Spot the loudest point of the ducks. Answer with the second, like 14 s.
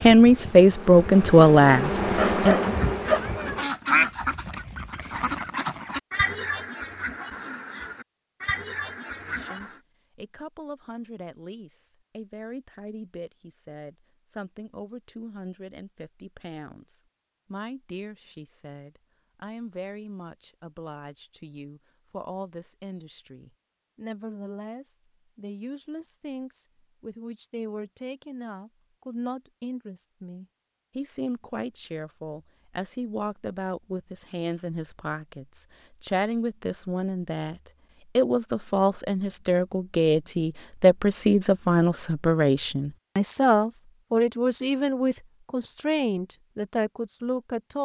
4 s.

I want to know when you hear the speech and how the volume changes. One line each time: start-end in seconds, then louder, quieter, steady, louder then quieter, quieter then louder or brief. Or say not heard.
0.0-2.6 brief
9.2-47.8 louder.